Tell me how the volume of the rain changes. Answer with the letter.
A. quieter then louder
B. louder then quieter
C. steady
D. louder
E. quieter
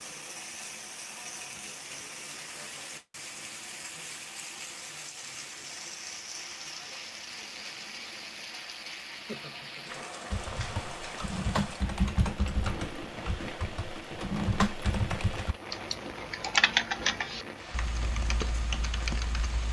C.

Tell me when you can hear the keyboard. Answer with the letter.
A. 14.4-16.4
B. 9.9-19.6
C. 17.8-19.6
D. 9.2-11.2
B.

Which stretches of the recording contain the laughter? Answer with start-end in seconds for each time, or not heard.
9.2-11.2.